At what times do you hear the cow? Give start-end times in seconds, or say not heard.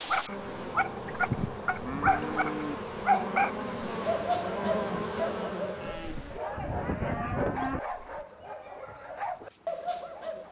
1.2-2.8, 5.8-7.8.